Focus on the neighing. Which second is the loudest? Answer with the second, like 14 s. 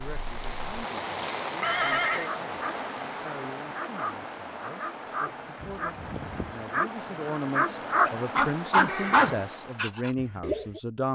2 s.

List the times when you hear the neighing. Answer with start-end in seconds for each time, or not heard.
1.6-2.3, 8.8-9.3.